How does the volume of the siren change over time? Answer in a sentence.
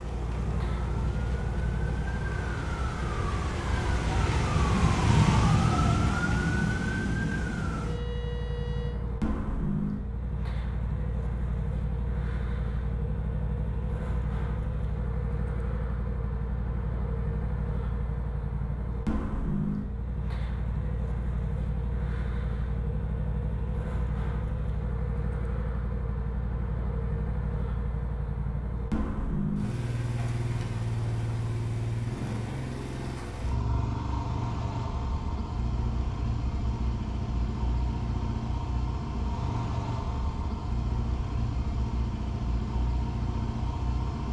The loudness of the siren goes up, then down.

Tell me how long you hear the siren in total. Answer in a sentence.
The siren can be heard for 9 seconds in total.